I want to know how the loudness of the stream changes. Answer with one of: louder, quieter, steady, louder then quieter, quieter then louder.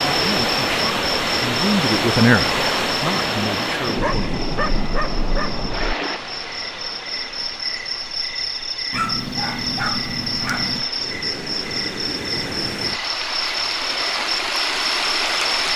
quieter then louder.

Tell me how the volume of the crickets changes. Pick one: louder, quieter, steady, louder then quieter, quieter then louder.
quieter then louder.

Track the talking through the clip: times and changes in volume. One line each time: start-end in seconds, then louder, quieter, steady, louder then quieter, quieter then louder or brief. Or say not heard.
0.1-4.4 louder then quieter.